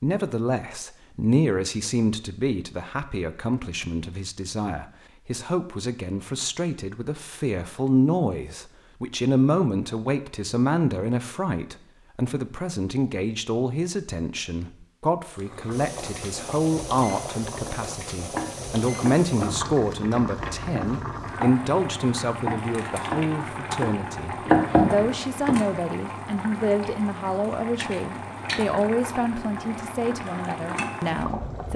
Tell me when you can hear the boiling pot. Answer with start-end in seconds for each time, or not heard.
15.3-31.7.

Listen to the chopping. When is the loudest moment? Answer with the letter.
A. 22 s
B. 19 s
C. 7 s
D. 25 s
D.